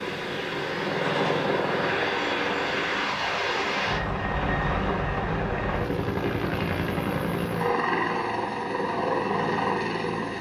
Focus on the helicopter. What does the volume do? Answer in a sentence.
The volume of the helicopter stays about the same.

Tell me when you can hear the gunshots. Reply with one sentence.
The gunshots can be heard from 1.0 to 1.5 s.